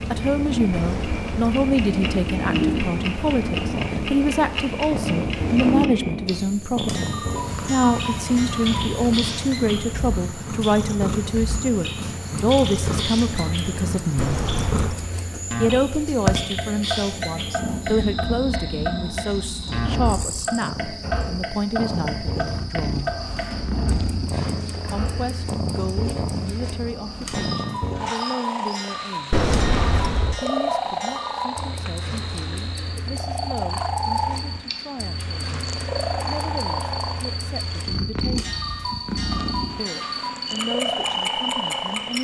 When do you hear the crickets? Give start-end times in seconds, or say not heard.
0.0-42.1.